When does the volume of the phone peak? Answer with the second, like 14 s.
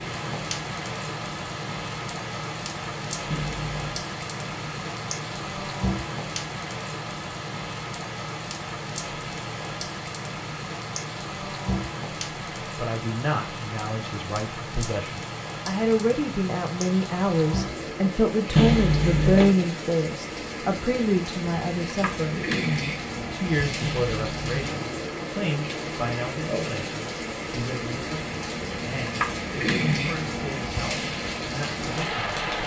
19 s.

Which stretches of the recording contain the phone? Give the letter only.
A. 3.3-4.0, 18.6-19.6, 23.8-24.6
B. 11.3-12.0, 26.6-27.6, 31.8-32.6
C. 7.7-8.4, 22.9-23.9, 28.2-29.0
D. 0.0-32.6
A.